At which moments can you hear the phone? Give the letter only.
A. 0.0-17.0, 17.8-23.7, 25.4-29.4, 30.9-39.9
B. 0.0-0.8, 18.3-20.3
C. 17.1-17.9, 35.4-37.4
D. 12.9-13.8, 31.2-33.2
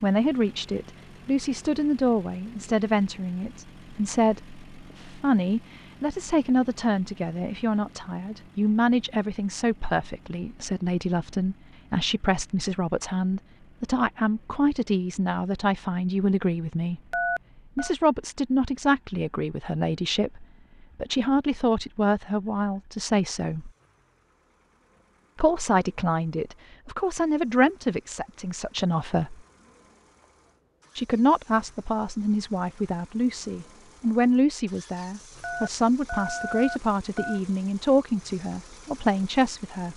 C.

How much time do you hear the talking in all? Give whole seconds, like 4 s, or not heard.
36 s.